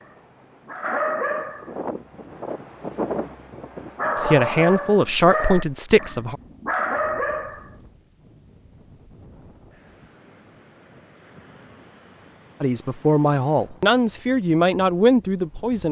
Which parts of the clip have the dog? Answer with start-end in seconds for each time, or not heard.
0.0-1.7, 4.0-7.7.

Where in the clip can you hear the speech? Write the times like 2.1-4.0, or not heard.
4.2-6.4, 12.6-15.8.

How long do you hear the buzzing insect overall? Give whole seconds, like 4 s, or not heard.
not heard.